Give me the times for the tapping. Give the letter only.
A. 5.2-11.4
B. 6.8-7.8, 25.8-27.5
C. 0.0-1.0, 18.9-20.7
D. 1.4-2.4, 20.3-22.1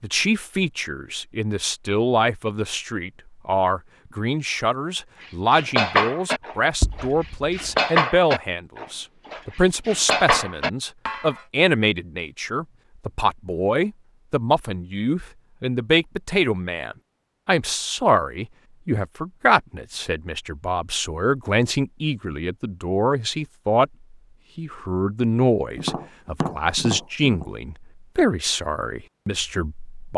B.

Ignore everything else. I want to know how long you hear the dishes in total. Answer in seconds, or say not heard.
6 s.